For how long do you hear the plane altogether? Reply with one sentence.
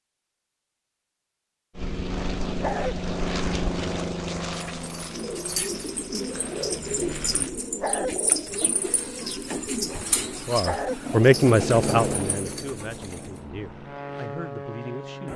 The plane can be heard for 10 seconds in total.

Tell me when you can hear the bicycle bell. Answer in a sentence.
You can't hear the bicycle bell here.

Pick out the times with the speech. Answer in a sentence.
You can hear the speech from 10.4 to 15.3 s.